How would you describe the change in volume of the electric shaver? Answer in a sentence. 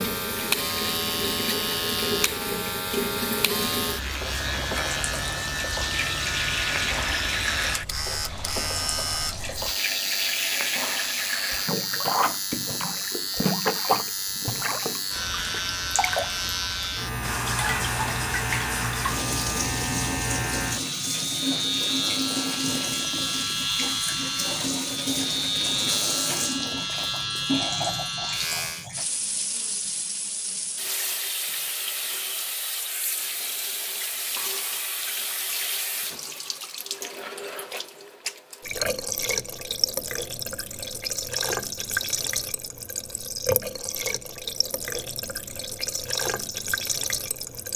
The loudness of the electric shaver stays about the same.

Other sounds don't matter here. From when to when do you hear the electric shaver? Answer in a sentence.
You can hear the electric shaver from 0.0 to 28.9 s.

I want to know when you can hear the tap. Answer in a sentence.
You can hear the tap from 0.0 to 47.7 s.